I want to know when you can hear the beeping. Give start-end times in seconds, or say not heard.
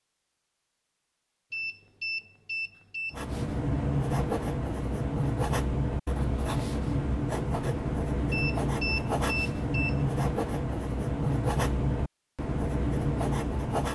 1.5-3.2, 8.3-10.1.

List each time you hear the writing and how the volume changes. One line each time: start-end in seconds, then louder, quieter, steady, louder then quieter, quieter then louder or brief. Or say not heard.
3.1-13.8 steady.